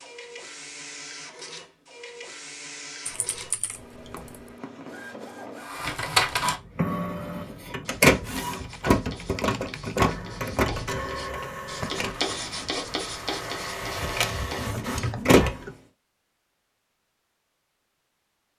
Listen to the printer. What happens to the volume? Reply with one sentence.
The loudness of the printer goes up, then down.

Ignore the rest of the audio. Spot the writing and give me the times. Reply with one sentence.
The writing can be heard from 6.7 to 15.9 s.